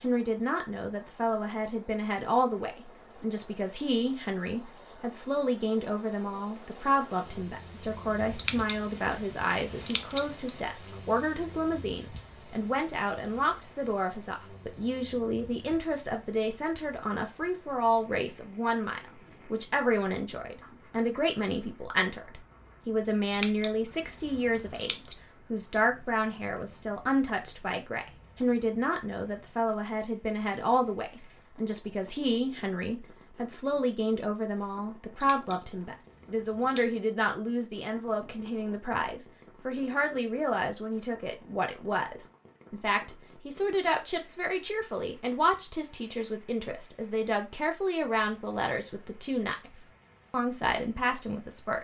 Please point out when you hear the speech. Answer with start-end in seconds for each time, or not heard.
0.0-51.7.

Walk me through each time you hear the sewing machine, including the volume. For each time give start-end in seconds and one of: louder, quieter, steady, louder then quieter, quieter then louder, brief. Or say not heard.
not heard.